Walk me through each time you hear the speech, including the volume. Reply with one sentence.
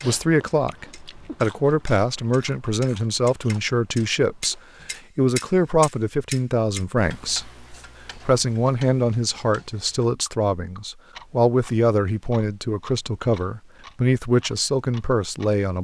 The speech can be heard from 0.0 to 15.7 s, at a steady volume.